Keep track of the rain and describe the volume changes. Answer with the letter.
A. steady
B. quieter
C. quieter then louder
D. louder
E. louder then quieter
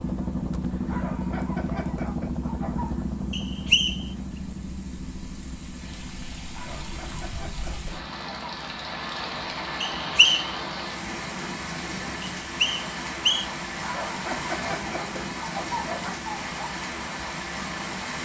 D.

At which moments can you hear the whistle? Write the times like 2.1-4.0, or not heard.
3.3-4.0, 9.8-10.5, 12.4-13.4.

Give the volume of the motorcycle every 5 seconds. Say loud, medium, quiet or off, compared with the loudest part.
loud, quiet, quiet, quiet.